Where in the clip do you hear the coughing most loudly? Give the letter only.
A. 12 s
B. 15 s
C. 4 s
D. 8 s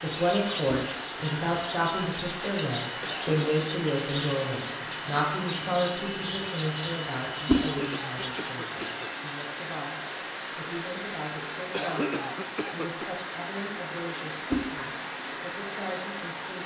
A.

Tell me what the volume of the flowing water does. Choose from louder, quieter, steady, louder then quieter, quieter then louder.
steady.